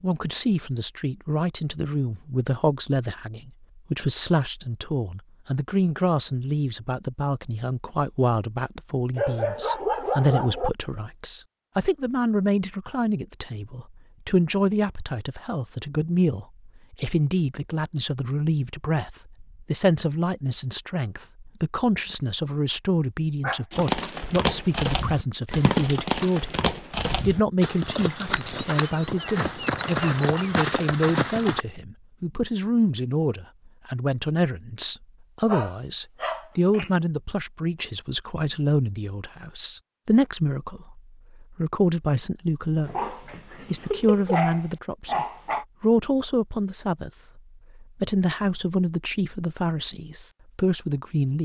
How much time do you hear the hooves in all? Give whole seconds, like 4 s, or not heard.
8 s.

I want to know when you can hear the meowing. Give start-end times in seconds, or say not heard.
not heard.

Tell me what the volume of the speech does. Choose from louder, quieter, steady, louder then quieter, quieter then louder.
steady.